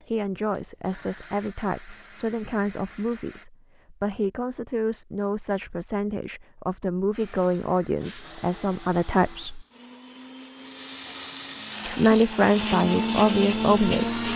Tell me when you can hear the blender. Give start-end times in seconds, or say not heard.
0.0-3.5, 7.1-14.3.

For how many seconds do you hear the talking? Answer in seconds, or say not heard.
12 s.